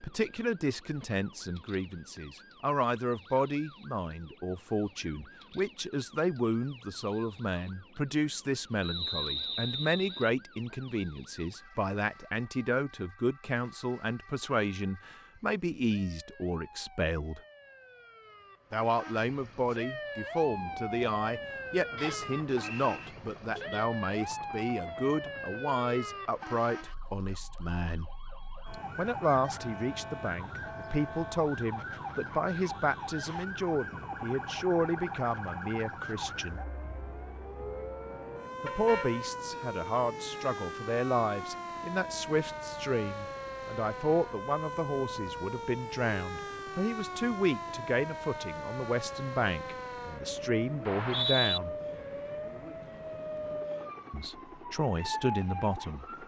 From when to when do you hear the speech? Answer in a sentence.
The speech can be heard from 0.0 to 17.4 s, from 18.7 to 28.1 s, from 28.9 to 36.6 s, from 38.6 to 51.8 s and from 54.1 to 56.2 s.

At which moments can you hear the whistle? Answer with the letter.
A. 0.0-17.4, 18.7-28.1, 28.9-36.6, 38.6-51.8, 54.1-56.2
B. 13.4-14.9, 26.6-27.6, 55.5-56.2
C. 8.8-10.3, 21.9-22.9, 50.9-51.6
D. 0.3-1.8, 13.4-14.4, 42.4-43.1
C.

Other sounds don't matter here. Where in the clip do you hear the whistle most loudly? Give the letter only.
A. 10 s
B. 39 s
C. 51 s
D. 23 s
C.